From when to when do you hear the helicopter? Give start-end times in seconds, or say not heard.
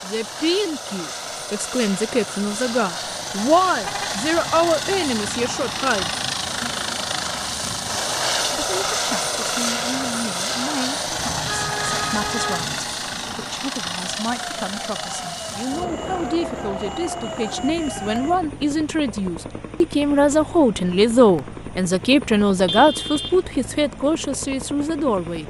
0.0-25.4.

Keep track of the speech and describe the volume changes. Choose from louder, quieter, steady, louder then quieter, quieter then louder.
quieter then louder.